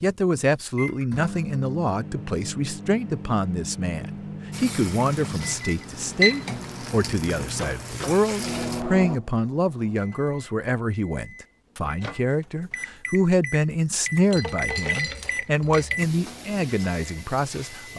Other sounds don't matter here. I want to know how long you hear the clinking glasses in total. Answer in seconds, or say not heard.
2 s.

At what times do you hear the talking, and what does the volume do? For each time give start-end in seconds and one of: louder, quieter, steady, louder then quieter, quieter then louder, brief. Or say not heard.
0.0-17.9 steady.